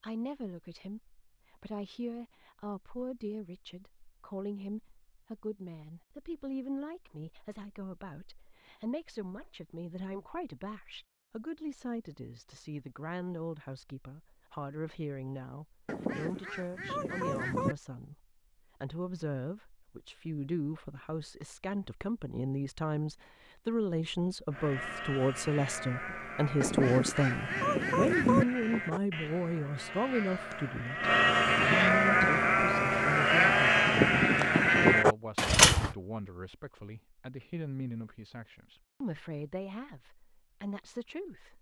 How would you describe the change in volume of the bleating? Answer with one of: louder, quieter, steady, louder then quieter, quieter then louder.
louder.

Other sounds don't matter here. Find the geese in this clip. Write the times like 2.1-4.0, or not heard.
15.8-17.8, 26.6-28.4.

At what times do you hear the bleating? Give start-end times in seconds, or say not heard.
24.5-36.0.